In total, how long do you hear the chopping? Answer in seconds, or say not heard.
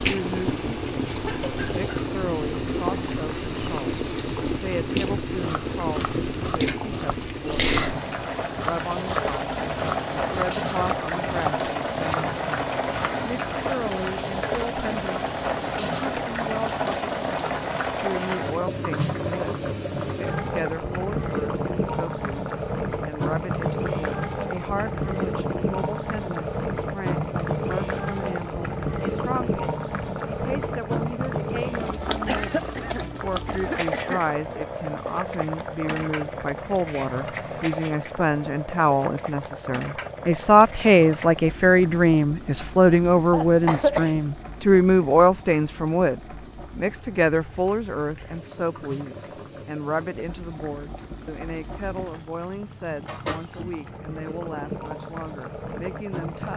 8 s.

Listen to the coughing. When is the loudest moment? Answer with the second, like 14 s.
44 s.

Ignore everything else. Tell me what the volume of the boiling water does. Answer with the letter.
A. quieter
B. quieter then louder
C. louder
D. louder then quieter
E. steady
A.